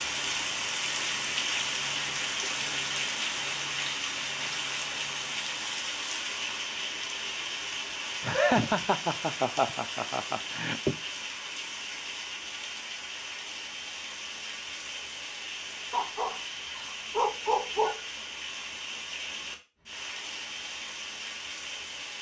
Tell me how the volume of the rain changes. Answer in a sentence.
The volume of the rain goes down.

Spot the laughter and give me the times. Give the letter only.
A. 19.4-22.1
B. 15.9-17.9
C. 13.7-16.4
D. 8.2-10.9
D.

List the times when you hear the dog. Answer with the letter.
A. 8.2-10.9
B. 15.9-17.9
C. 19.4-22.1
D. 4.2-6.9
B.